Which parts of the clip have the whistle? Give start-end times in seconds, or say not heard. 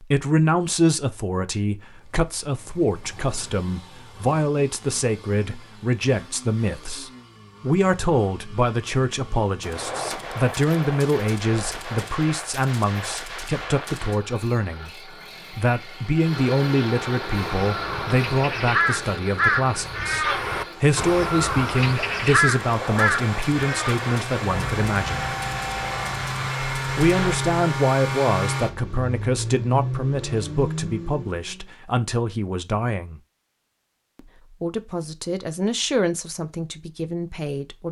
not heard.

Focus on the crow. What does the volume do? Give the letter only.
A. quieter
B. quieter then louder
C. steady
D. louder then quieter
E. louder
A.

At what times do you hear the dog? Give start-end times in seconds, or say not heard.
not heard.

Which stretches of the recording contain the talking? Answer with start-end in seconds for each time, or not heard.
0.0-25.3, 26.9-33.2, 34.1-37.8.